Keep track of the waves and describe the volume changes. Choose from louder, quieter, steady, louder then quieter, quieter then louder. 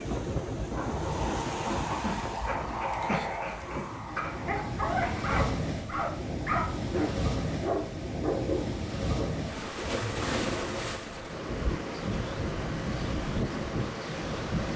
steady.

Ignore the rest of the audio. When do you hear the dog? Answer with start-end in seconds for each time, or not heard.
0.7-9.2.